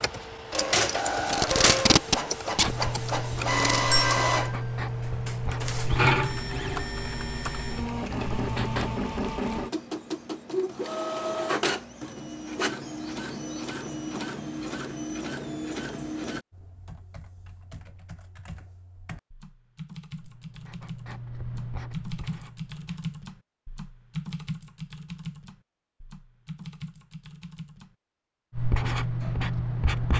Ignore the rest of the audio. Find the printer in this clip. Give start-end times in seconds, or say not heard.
0.0-16.4.